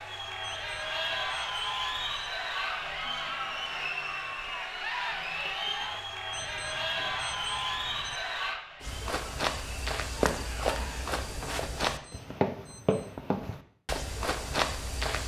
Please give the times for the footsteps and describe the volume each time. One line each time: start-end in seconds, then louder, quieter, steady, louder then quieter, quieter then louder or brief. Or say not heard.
8.8-15.2 steady.